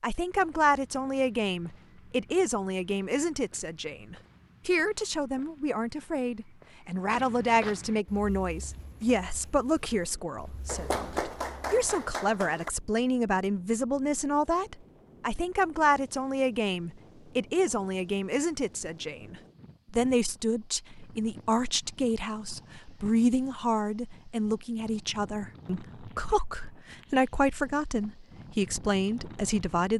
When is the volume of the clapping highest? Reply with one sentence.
The volume of the clapping peaks at 11 seconds.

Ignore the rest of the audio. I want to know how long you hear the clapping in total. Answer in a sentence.
The clapping can be heard for 2 seconds in total.